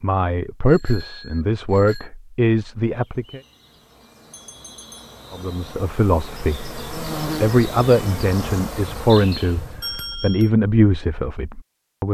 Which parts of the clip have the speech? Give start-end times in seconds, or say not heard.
0.0-3.4, 5.3-12.0.